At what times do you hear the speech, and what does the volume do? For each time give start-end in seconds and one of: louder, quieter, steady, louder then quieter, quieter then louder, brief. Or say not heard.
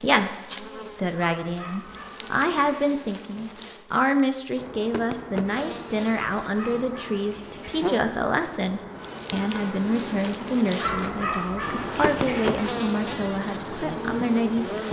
0.0-14.8 steady.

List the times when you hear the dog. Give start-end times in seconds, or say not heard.
1.2-2.9, 6.4-7.8, 10.8-12.5.